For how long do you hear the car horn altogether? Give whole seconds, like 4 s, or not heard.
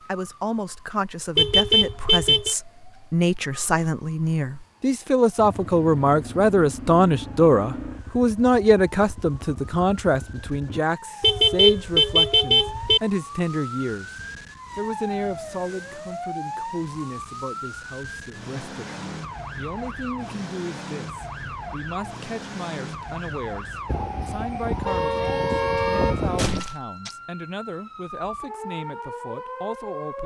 6 s.